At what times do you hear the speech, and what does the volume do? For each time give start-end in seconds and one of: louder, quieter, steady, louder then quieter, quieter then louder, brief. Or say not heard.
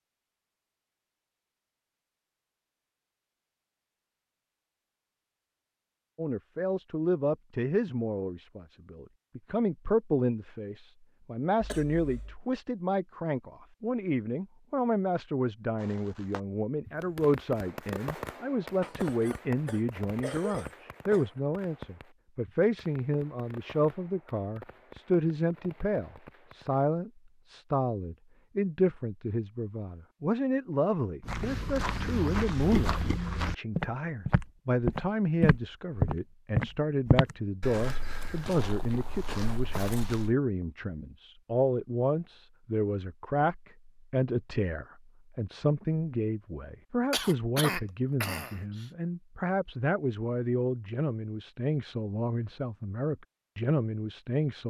6.2-54.6 steady.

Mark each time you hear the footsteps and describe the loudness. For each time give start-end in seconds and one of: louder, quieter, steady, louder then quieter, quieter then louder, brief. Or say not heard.
31.2-40.4 louder then quieter.